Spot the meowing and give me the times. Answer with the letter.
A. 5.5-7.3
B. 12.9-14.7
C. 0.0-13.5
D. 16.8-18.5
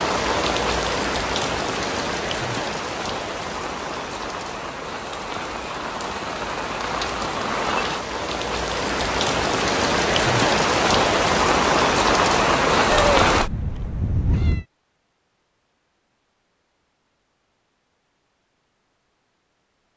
B.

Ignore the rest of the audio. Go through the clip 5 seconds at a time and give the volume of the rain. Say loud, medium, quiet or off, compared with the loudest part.
medium, medium, loud, off.